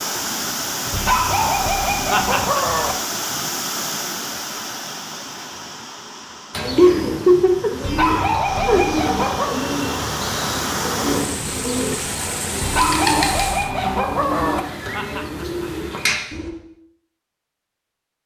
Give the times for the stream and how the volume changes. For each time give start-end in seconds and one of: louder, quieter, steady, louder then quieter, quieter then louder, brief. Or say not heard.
0.0-13.7 quieter then louder.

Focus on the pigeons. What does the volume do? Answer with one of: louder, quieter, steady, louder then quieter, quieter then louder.
steady.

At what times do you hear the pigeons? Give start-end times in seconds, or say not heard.
6.5-16.5.